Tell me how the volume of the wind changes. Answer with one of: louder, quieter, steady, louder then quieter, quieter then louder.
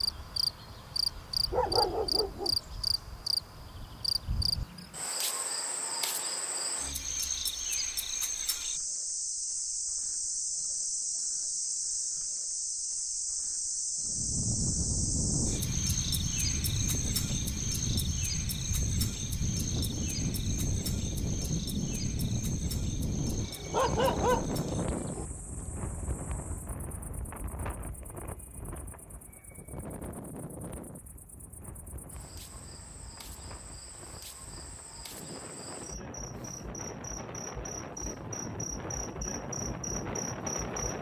quieter then louder.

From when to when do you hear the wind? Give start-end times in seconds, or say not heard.
14.0-40.9.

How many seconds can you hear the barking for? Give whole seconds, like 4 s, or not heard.
3 s.